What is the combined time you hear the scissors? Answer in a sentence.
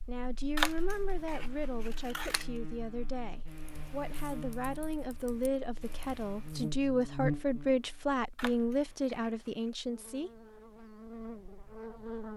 You can hear the scissors for 3 seconds altogether.